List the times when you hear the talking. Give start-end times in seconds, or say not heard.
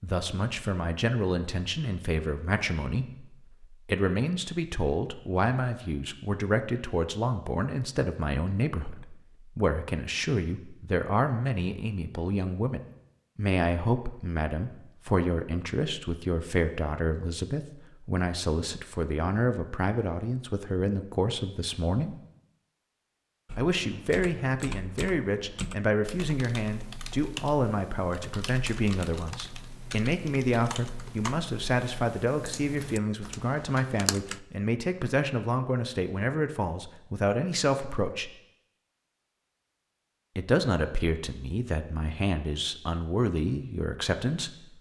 0.0-22.1, 23.6-38.3, 40.4-44.7.